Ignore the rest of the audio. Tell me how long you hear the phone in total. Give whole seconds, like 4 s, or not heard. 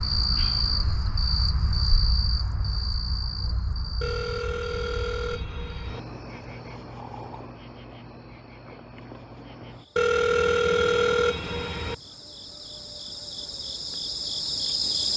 4 s.